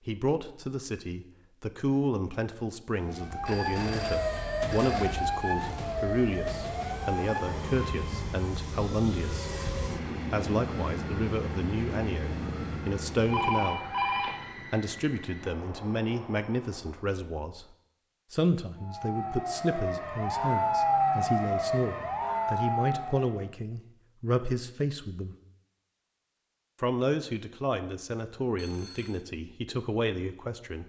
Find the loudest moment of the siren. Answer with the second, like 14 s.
21 s.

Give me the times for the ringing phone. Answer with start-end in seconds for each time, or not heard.
3.5-5.1, 13.2-14.7, 28.6-29.2.